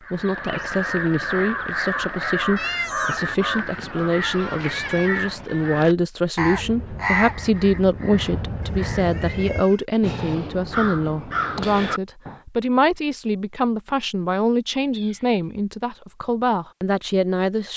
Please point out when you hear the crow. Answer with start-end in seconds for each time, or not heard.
0.0-12.4.